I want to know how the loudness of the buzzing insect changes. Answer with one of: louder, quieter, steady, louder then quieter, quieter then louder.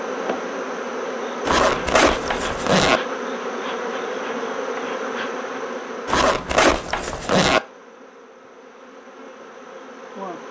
quieter.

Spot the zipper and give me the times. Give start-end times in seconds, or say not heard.
1.4-3.0, 6.0-7.6.